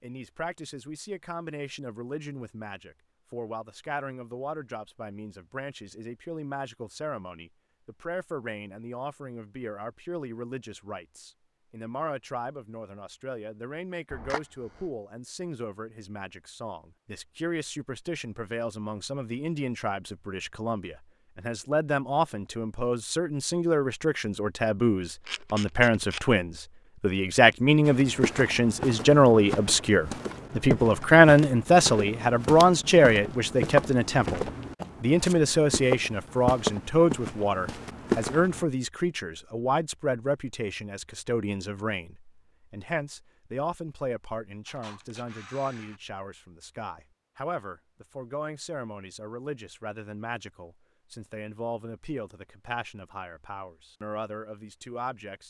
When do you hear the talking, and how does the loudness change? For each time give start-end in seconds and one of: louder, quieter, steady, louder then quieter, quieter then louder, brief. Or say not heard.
0.0-55.4 louder then quieter.